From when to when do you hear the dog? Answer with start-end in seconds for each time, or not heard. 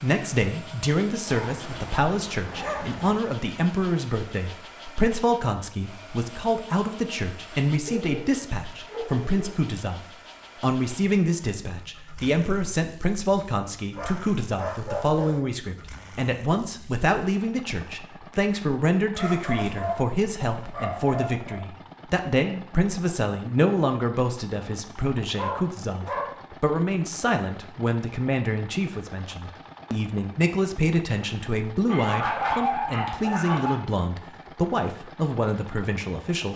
1.2-3.1, 7.8-9.6, 13.9-15.4, 19.1-21.6, 25.4-26.4, 31.9-33.8.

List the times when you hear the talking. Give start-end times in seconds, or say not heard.
0.0-36.5.